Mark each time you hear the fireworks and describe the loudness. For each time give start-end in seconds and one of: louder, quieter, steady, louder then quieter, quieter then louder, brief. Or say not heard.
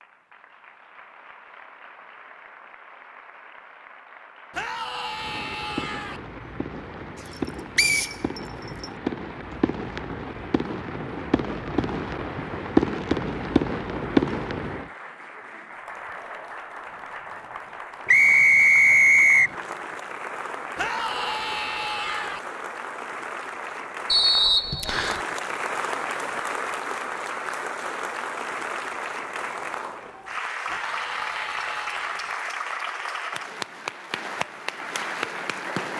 5.1-14.9 louder.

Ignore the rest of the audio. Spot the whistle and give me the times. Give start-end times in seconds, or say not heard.
7.8-8.8, 18.1-19.6, 24.1-25.2.